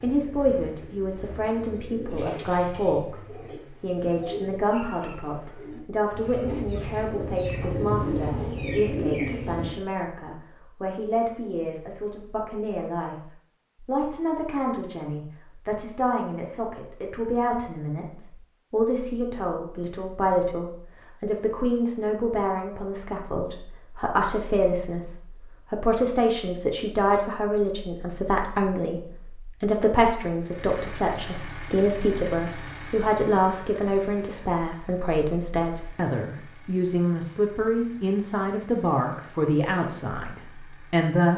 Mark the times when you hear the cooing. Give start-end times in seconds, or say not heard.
1.6-9.7.